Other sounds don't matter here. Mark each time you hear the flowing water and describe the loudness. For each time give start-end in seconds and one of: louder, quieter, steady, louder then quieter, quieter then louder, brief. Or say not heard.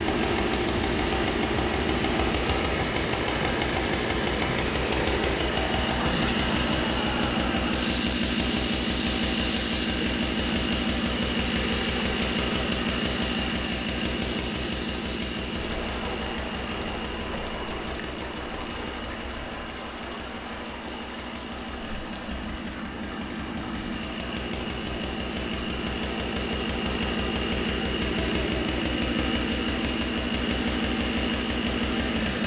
0.0-32.4 quieter.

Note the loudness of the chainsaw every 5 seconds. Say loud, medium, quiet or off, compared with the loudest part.
loud, loud, loud, medium, medium, loud, loud.